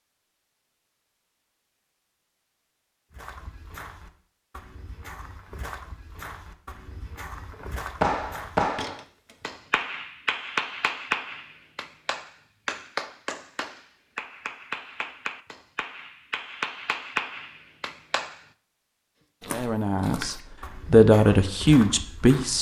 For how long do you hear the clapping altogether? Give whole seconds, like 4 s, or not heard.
11 s.